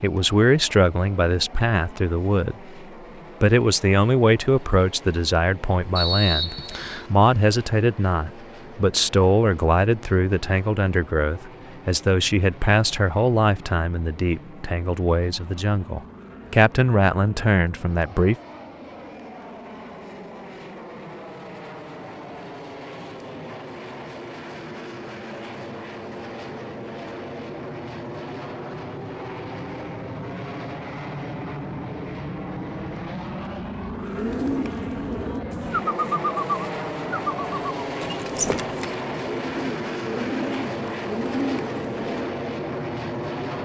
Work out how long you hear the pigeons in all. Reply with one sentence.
You can hear the pigeons for 8 seconds altogether.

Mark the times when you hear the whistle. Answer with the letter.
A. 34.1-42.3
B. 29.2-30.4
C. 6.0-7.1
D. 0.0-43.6
C.